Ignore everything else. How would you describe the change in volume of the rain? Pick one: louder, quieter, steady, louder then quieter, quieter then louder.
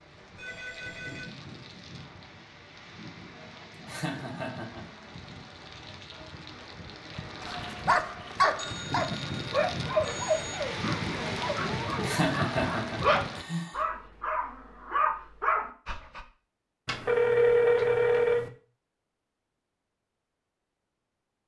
louder.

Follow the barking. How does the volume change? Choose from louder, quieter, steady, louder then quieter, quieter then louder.
quieter then louder.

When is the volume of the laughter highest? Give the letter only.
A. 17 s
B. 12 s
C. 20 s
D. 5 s
B.